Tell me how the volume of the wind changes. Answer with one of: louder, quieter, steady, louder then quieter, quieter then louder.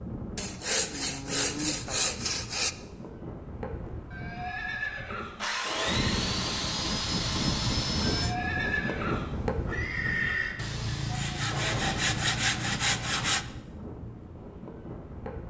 louder then quieter.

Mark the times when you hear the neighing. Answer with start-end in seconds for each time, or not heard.
4.1-6.2, 8.0-10.6.